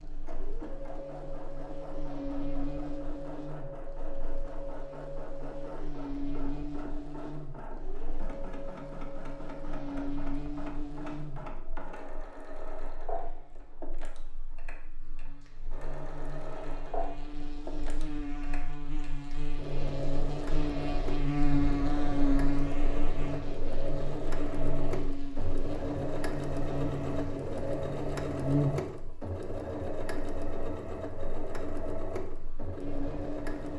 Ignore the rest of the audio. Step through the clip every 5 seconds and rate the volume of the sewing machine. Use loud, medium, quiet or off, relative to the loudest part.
medium, medium, medium, medium, loud, loud, loud.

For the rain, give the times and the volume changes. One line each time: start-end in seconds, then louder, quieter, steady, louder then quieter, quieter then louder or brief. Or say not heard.
not heard.